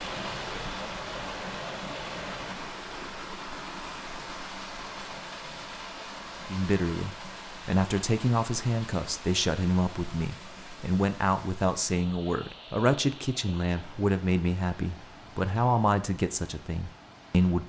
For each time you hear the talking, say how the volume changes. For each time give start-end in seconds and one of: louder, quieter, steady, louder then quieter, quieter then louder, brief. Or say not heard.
6.5-17.6 steady.